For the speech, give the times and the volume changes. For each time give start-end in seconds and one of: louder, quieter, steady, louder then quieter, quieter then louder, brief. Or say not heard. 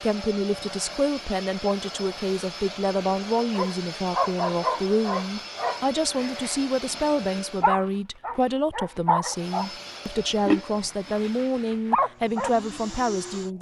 0.0-13.5 steady.